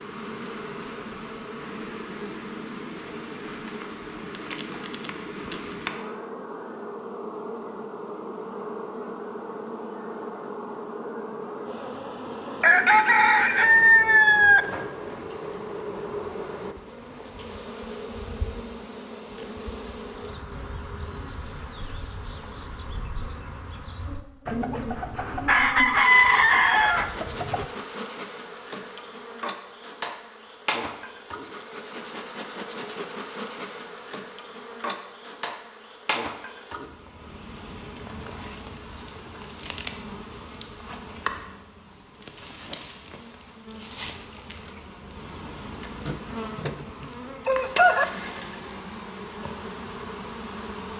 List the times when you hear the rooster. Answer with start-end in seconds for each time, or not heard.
12.6-14.7, 24.4-27.6, 46.0-48.0.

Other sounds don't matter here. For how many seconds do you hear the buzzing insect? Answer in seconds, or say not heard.
51 s.